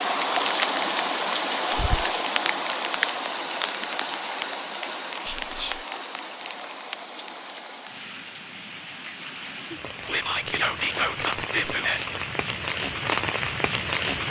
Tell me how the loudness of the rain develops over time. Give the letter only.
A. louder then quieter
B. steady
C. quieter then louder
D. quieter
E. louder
C.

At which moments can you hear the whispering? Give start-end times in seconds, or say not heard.
1.7-2.1, 5.2-5.8, 10.1-12.1.